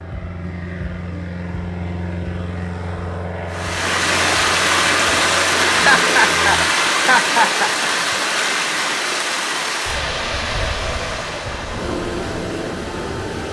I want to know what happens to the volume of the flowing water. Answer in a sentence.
The loudness of the flowing water goes down.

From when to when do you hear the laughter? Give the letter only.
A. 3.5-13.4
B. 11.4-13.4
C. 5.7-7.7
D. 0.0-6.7
C.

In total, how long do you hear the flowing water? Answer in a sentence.
The flowing water can be heard for 10 seconds in total.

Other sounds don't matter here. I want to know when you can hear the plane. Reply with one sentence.
The plane can be heard from 0.0 to 6.7 s.